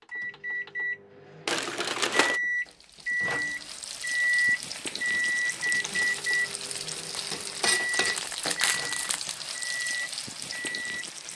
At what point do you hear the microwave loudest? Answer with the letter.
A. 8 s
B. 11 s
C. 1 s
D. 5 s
D.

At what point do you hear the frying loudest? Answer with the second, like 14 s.
8 s.